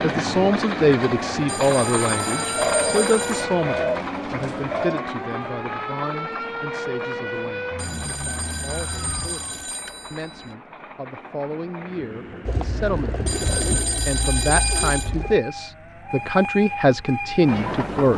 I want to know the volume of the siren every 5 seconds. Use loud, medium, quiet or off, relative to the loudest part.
loud, loud, off, off.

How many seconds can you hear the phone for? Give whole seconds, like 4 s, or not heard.
7 s.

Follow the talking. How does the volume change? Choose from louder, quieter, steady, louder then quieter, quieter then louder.
quieter then louder.